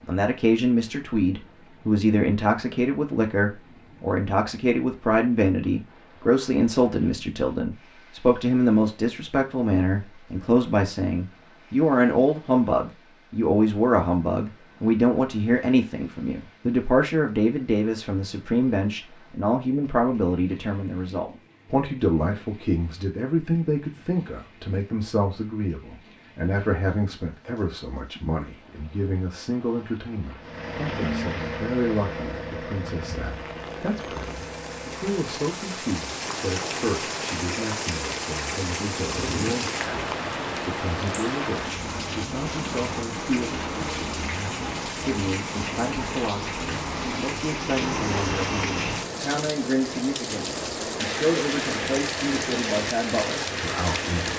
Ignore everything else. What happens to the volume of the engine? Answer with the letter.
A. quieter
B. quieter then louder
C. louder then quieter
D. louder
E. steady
A.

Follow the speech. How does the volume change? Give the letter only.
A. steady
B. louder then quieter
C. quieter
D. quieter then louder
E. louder
C.